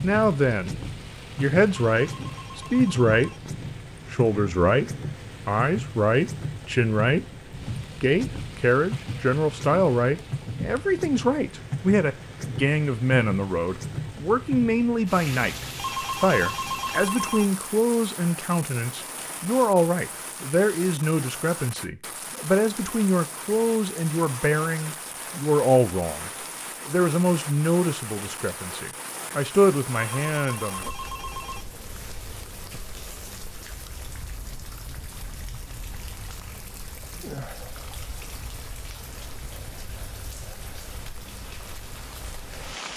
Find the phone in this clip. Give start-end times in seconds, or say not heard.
1.9-3.4, 15.8-17.4, 29.9-31.6.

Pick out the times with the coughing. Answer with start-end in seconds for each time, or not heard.
not heard.